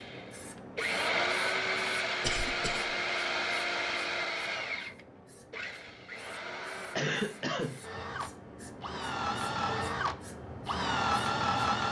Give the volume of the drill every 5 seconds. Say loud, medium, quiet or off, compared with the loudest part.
loud, medium, loud.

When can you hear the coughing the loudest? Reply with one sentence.
The volume of the coughing peaks at 7 seconds.